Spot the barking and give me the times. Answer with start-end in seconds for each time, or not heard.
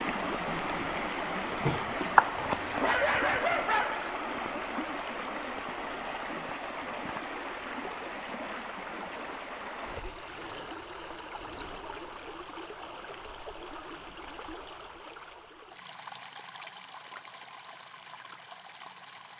2.4-4.1.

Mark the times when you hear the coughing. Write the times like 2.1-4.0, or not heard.
not heard.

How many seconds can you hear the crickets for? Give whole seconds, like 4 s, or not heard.
not heard.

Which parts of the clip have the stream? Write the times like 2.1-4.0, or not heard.
0.0-19.3.